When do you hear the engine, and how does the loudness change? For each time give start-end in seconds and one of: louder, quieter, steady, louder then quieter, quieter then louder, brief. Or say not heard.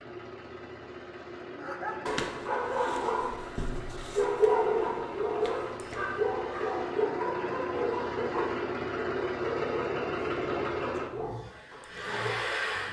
0.0-12.8 louder.